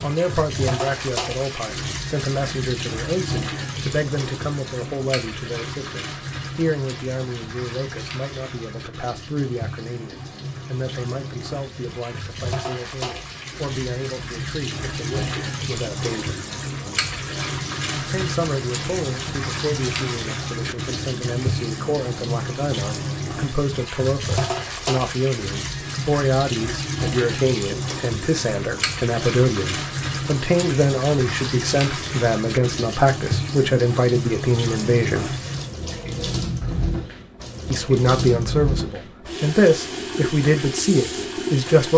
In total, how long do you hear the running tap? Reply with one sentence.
The running tap can be heard for 42 seconds in total.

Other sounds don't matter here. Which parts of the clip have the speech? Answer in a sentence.
You can hear the speech from 0.0 to 16.4 s, from 17.9 to 35.4 s and from 37.7 to 41.9 s.